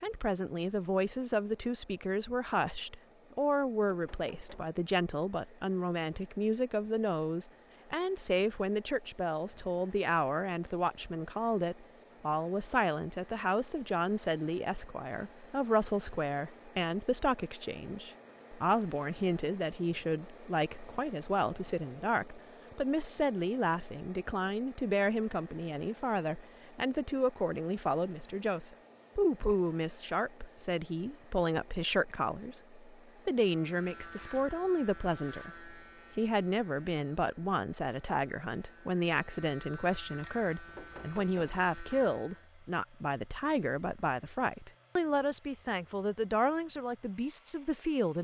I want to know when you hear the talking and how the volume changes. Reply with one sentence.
The talking can be heard from 0.0 to 48.1 s, at a steady volume.